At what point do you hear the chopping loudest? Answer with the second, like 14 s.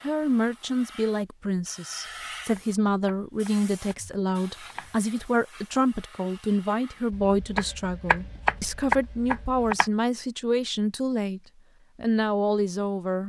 9 s.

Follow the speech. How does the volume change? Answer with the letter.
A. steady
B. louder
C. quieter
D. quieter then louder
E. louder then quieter
A.